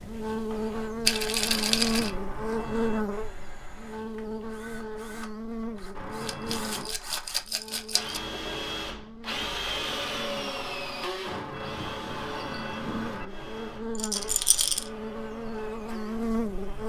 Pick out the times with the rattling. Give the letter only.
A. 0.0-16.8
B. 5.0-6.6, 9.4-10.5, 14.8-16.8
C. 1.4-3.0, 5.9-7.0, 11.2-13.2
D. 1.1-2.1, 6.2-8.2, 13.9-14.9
D.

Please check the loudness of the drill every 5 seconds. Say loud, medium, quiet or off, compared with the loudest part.
quiet, loud, loud, medium.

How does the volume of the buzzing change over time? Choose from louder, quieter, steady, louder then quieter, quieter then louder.
quieter then louder.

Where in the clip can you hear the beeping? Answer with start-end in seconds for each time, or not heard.
1.4-3.0, 5.9-7.0, 11.2-13.2.